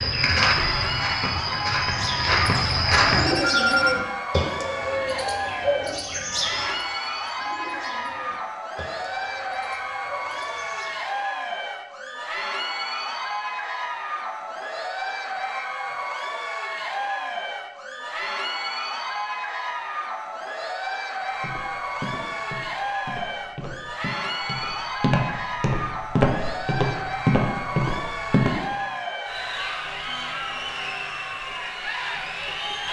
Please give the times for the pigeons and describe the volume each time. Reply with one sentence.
The pigeons can be heard from 1.8 to 11.2 s, getting quieter.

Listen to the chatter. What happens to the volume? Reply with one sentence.
The loudness of the chatter stays about the same.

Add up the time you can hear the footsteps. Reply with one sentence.
The footsteps can be heard for 11 seconds in total.